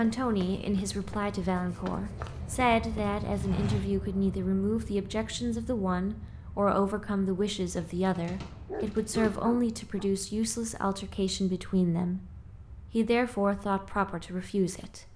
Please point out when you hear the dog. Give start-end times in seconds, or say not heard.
8.4-10.1.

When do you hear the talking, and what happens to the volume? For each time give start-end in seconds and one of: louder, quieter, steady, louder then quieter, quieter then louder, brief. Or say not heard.
0.0-12.2 steady
12.9-15.1 brief.